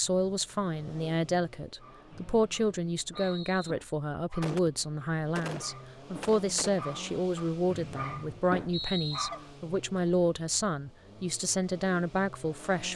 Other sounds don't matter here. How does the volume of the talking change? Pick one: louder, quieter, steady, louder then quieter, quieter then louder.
steady.